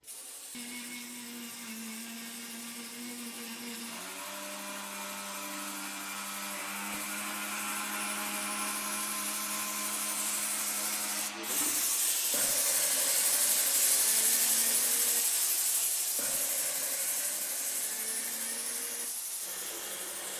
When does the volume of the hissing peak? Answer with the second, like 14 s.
14 s.